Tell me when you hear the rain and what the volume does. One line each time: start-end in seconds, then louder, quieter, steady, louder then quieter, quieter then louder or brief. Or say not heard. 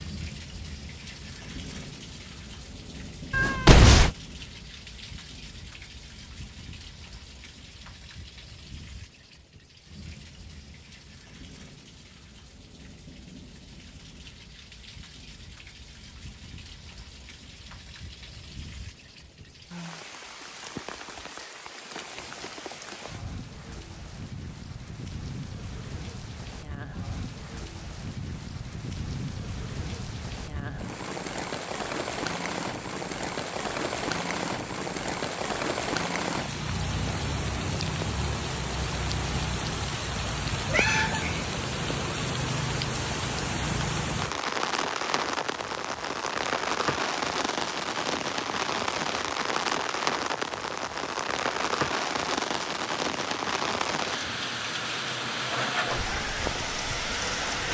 0.0-57.6 louder.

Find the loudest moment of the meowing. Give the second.
4 s.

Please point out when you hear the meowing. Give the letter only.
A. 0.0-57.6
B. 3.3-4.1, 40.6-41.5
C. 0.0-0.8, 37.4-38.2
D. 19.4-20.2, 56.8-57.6
B.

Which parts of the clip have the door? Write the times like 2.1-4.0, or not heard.
not heard.